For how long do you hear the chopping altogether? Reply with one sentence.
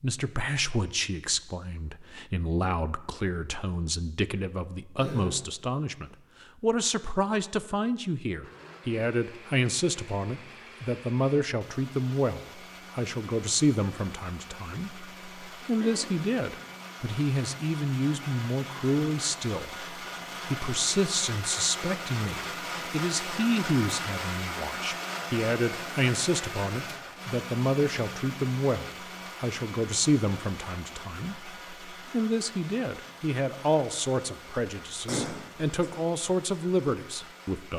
You can't hear the chopping here.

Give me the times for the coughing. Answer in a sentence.
You can hear the coughing from 5.0 to 5.4 s, from 15.8 to 16.2 s and from 35.0 to 35.9 s.